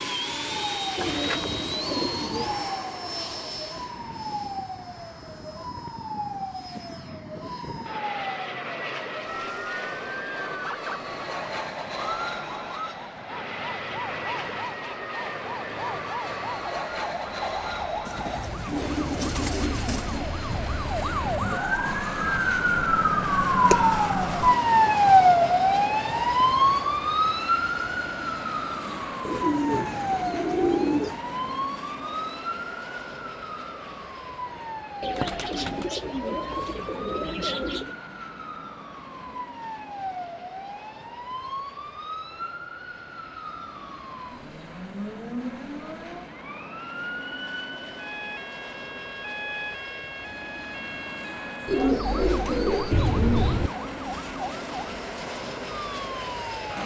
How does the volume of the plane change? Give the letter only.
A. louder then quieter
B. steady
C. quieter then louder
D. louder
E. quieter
C.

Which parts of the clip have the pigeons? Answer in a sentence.
You can hear the pigeons from 0.9 to 2.6 s, from 18.1 to 20.3 s, from 29.2 to 31.2 s, from 35.0 to 38.0 s and from 51.6 to 53.7 s.